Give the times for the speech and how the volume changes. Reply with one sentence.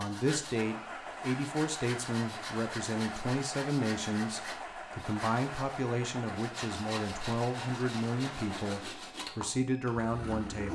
You can hear the speech from 0.0 to 10.7 s, at a steady volume.